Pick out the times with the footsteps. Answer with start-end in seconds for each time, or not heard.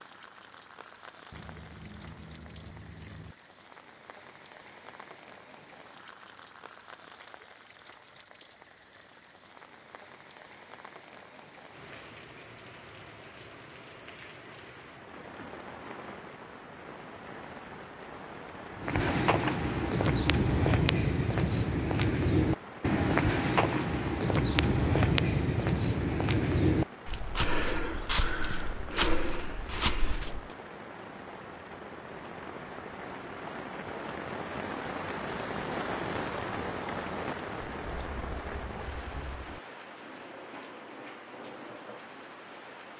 18.8-30.5.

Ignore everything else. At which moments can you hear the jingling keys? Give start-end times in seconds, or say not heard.
1.3-3.4, 18.9-19.6, 37.5-39.6.